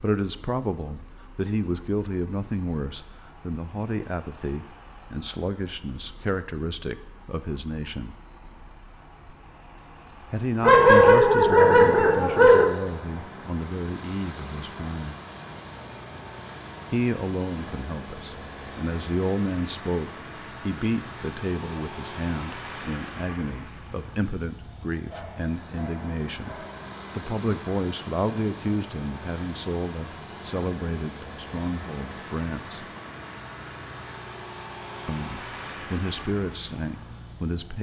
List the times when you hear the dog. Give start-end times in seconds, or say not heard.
10.6-12.7, 25.1-26.9.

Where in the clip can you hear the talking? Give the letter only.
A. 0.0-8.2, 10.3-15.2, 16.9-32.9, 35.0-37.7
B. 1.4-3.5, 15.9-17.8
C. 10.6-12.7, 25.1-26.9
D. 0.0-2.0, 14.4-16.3
A.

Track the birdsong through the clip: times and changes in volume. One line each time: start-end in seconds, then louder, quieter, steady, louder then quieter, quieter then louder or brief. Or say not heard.
not heard.